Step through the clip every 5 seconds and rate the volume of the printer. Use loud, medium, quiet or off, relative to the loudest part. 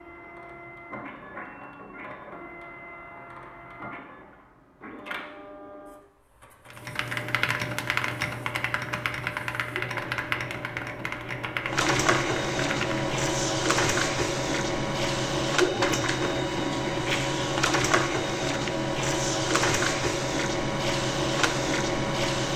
quiet, quiet, loud, loud, loud.